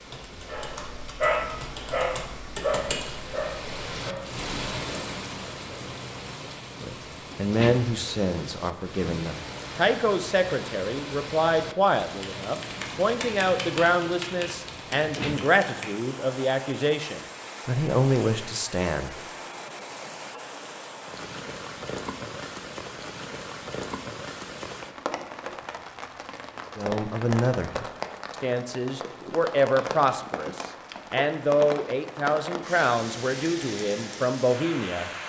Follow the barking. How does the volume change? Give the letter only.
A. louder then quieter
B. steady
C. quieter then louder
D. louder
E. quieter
E.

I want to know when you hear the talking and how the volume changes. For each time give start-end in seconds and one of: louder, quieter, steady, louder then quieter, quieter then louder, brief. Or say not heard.
6.8-19.1 steady
26.8-35.1 steady.